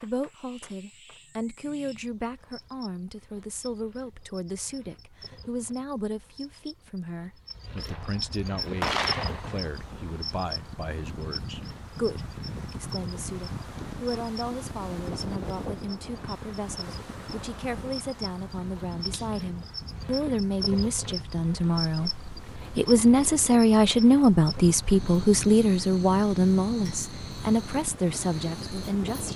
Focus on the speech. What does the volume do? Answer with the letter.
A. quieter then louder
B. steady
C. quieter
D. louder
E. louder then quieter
D.